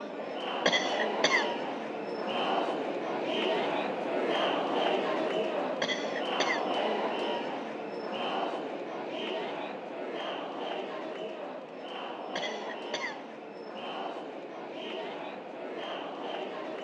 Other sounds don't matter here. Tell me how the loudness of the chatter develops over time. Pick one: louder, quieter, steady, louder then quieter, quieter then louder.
quieter.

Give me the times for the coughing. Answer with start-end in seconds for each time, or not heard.
0.7-1.5, 5.8-6.7, 12.3-13.2.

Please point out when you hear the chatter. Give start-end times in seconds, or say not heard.
0.0-16.7.